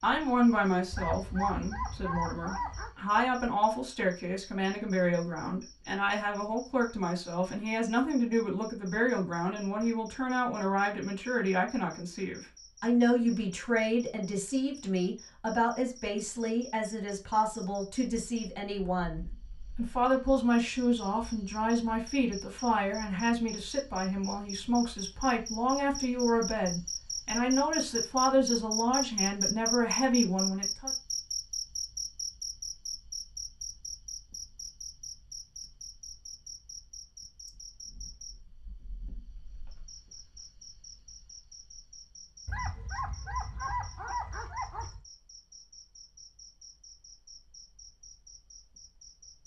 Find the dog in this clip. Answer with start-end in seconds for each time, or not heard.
0.9-3.0, 42.5-45.0.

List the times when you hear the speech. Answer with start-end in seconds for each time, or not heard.
0.0-30.9.